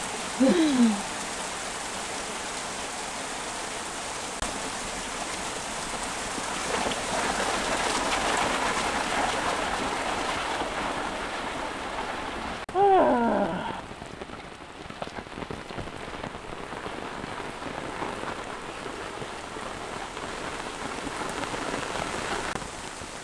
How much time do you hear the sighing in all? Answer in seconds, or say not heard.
2 s.